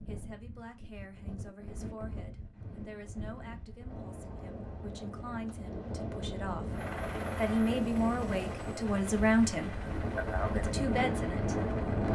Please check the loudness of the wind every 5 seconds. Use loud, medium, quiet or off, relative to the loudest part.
quiet, medium, loud.